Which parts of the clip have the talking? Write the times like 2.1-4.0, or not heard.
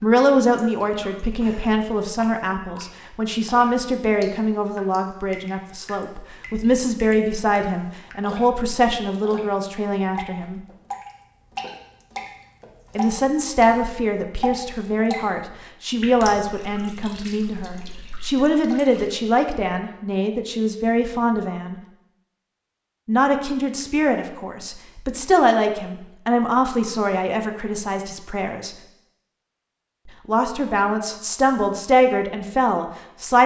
0.0-10.6, 12.9-21.8, 23.1-28.8, 30.1-33.4.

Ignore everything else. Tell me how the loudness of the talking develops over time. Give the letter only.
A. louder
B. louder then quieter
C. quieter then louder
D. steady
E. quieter
D.